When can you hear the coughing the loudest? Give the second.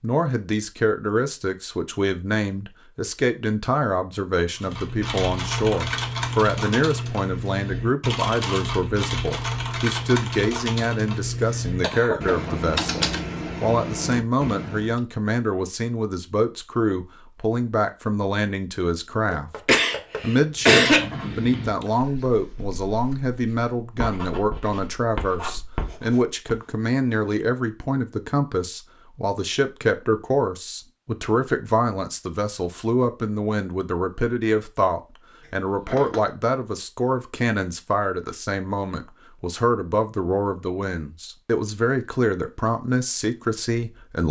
21 s.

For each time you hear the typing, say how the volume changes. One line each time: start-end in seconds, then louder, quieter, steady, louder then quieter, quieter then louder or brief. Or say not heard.
4.5-15.0 steady.